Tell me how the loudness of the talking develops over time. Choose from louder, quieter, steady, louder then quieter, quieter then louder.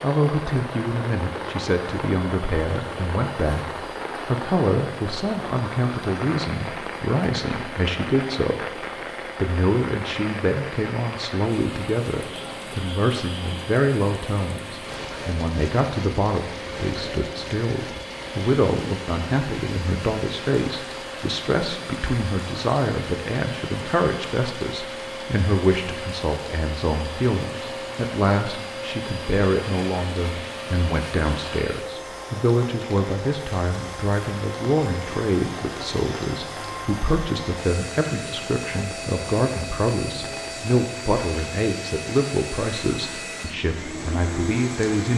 steady.